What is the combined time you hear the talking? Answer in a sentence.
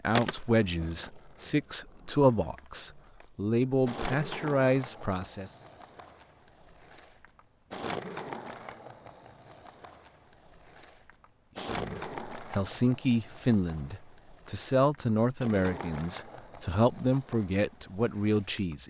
The talking can be heard for 13 seconds in total.